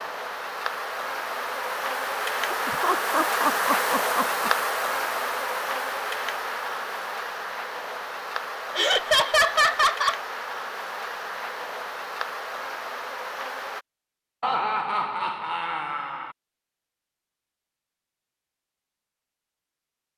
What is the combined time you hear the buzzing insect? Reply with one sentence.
The buzzing insect can be heard for 14 seconds in total.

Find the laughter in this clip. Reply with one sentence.
The laughter can be heard from 2.5 to 4.5 s, from 8.8 to 10.2 s and from 14.4 to 16.4 s.